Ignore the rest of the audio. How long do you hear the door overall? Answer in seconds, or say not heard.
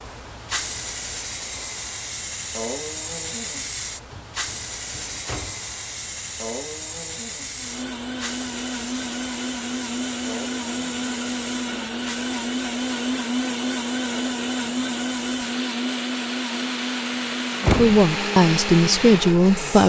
2 s.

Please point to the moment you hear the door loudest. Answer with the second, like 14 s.
18 s.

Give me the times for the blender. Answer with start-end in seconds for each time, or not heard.
7.5-19.8.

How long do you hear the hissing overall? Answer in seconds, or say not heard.
20 s.